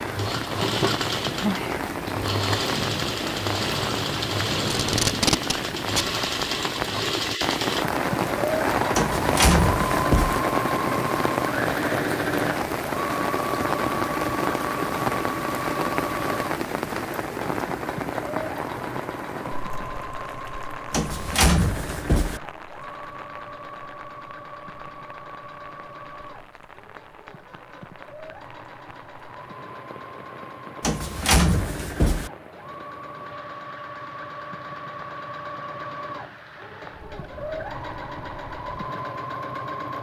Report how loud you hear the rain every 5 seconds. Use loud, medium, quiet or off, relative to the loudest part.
loud, loud, loud, loud, quiet, quiet, quiet, quiet.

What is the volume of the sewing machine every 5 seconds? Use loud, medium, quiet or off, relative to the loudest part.
loud, loud, loud, medium, medium, quiet, medium, medium.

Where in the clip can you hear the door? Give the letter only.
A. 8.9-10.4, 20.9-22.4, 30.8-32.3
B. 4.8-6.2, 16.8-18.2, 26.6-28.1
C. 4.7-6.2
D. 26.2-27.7
A.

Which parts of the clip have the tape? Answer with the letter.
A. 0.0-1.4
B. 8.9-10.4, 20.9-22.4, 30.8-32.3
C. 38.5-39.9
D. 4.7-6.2
D.